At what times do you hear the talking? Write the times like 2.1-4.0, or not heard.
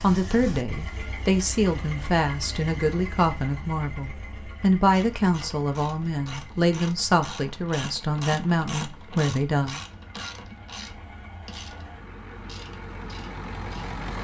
0.0-9.8.